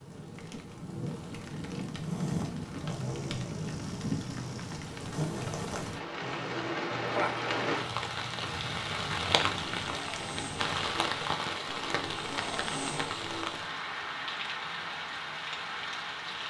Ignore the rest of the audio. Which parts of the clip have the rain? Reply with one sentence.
The rain can be heard from 0.0 to 16.4 s.